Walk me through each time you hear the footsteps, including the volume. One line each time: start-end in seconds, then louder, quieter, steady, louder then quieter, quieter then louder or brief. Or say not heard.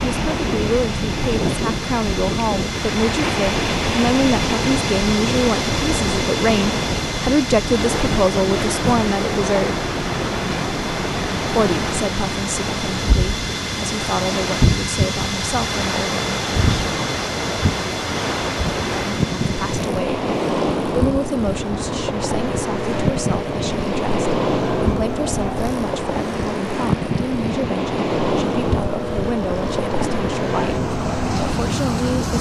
not heard.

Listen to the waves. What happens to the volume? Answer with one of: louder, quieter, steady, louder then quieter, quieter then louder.
steady.